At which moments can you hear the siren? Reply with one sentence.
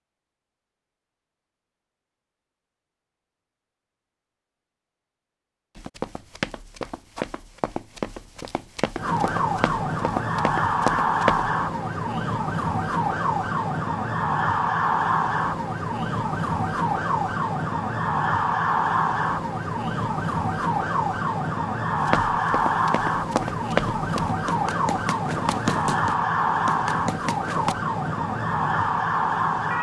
You can hear the siren from 8.9 to 29.7 s.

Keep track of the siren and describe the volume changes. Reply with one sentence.
The volume of the siren stays about the same.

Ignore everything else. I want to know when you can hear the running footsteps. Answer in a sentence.
The running footsteps can be heard from 5.8 to 11.5 s and from 22.1 to 27.8 s.